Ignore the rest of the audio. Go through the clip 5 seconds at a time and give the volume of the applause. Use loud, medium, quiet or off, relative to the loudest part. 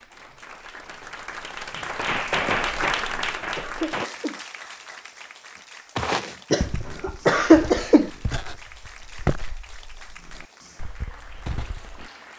loud, quiet, quiet.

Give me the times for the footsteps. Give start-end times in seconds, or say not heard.
6.0-12.1.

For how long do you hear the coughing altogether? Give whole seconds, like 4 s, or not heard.
3 s.